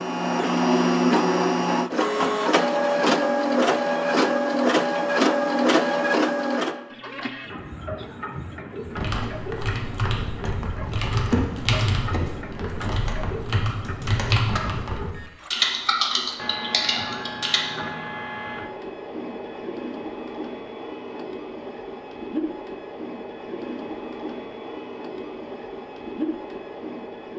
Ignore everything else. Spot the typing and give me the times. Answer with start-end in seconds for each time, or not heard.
8.9-17.6.